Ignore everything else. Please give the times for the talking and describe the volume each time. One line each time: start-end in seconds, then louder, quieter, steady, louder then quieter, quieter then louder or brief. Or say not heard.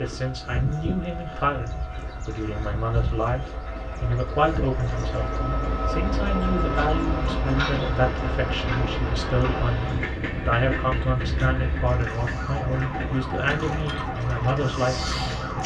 0.0-15.4 steady.